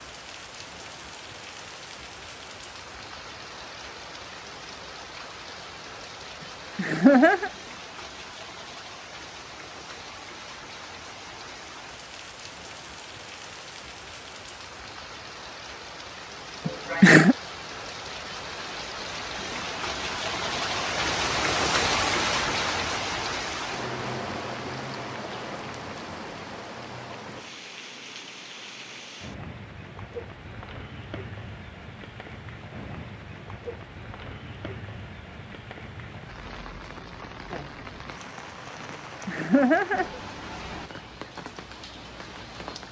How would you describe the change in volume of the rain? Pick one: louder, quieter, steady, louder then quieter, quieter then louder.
louder then quieter.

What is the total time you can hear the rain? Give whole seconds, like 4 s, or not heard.
43 s.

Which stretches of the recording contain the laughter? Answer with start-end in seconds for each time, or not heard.
6.8-7.5, 16.6-17.4, 39.2-40.2.